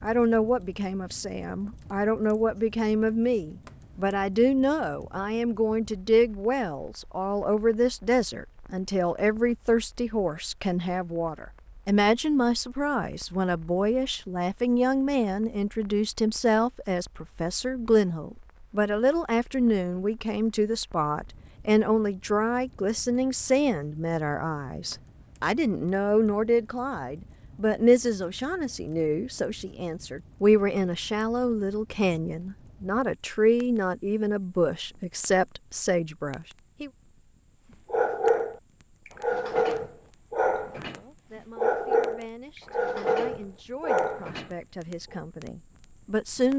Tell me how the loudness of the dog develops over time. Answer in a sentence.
The volume of the dog stays about the same.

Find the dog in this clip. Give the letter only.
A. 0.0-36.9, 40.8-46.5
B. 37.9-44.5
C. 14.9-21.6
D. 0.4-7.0
B.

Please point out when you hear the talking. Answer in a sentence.
You can hear the talking from 0.0 to 36.9 s and from 40.8 to 46.5 s.